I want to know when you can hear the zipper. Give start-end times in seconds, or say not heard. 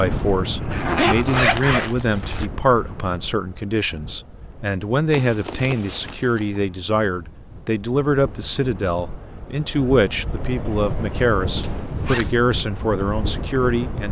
0.7-2.5, 5.1-6.5, 11.6-12.3.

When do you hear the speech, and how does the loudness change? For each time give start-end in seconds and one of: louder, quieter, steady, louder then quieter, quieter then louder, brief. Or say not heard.
0.0-14.0 steady.